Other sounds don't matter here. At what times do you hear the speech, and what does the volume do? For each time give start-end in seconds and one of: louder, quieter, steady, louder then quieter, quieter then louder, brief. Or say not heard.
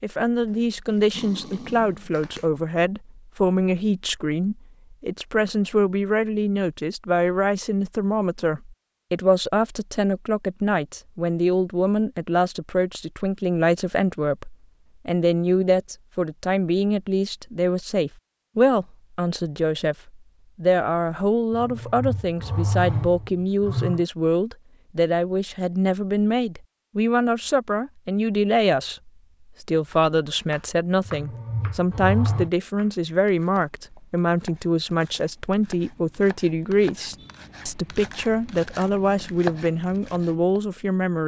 0.0-41.2 steady.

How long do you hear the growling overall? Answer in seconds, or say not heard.
5 s.